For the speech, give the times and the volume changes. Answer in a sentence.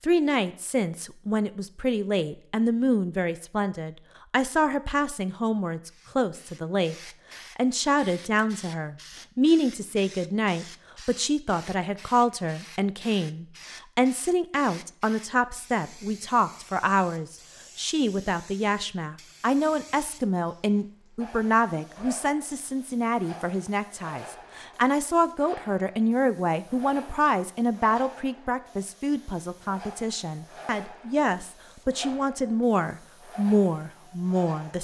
The speech can be heard from 0.0 to 7.0 s, at a steady volume; and from 7.5 to 34.7 s, at a steady volume.